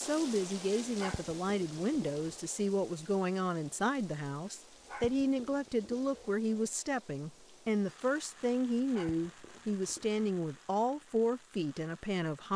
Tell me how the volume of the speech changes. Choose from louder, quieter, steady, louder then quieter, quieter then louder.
steady.